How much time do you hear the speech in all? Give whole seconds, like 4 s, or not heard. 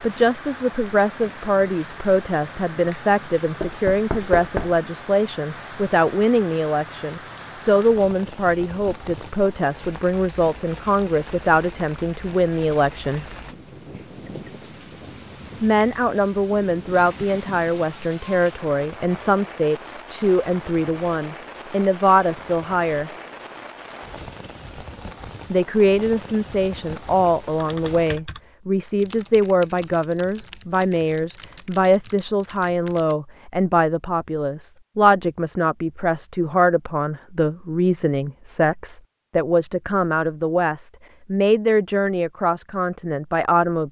39 s.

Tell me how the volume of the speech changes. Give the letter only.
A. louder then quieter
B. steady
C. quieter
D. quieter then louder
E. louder
B.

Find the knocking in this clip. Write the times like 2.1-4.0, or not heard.
3.6-4.8.